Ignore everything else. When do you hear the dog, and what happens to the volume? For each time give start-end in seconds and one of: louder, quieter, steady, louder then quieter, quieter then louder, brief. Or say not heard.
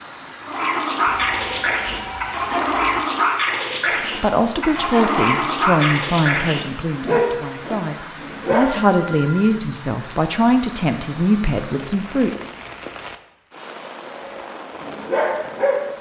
0.4-8.7 steady
14.1-15.9 brief.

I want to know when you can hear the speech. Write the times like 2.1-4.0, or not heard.
4.2-12.3.